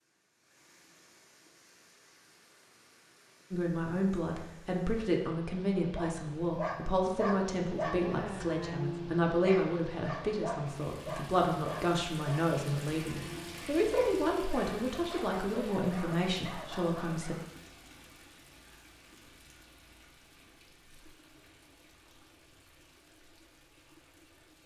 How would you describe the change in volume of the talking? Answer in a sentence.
The loudness of the talking stays about the same.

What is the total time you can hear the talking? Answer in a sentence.
The talking can be heard for 14 seconds in total.